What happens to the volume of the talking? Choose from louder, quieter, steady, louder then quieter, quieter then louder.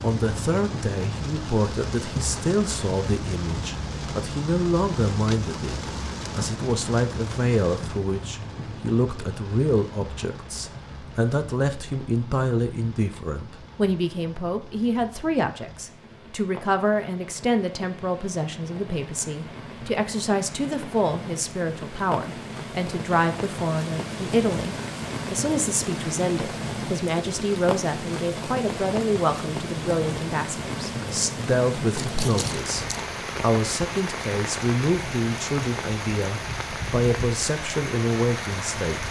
steady.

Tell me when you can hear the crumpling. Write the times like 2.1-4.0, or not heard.
31.9-33.1.